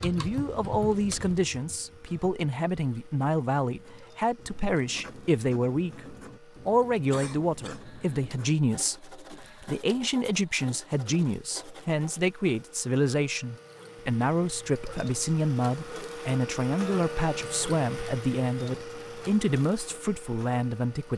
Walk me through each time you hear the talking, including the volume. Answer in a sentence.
You can hear the talking from 0.0 to 21.1 s, at a steady volume.